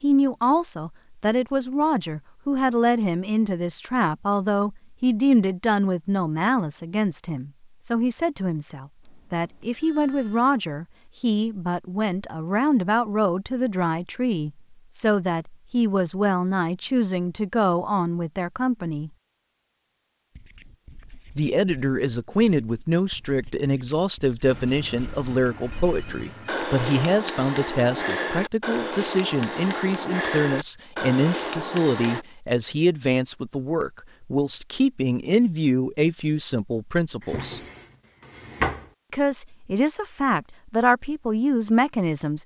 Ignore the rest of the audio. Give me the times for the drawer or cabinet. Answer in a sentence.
You can hear the drawer or cabinet from 37.2 to 38.9 s.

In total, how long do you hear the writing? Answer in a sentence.
You can hear the writing for 12 seconds altogether.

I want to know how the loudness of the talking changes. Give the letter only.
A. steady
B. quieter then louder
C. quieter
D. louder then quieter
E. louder
A.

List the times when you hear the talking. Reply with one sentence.
You can hear the talking from 0.0 to 19.1 s, from 21.4 to 37.6 s and from 39.1 to 42.4 s.